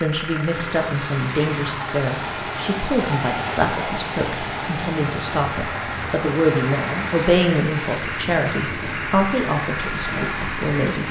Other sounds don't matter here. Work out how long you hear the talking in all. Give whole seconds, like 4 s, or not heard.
11 s.